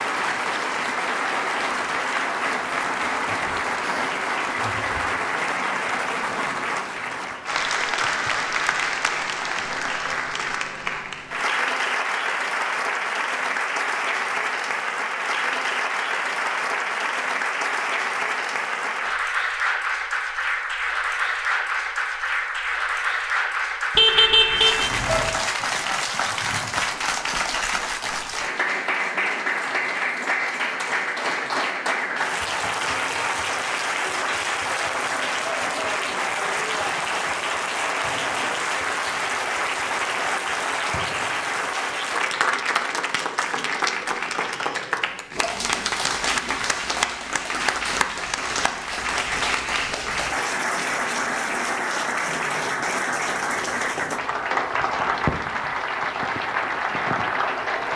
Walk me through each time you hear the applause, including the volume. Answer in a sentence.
You can hear the applause from 0.0 to 57.9 s, at a steady volume.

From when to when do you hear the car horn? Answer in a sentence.
You can hear the car horn from 23.9 to 25.3 s.